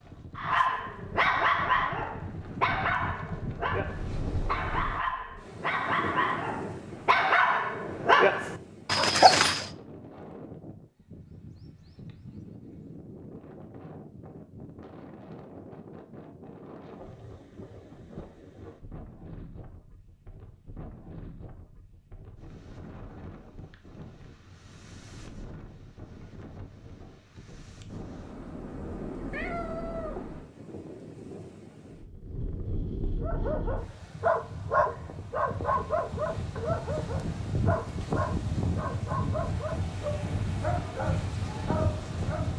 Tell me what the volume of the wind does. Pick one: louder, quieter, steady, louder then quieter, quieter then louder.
quieter then louder.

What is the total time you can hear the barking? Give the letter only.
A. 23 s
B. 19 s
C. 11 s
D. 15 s
B.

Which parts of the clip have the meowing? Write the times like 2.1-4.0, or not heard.
27.9-30.5.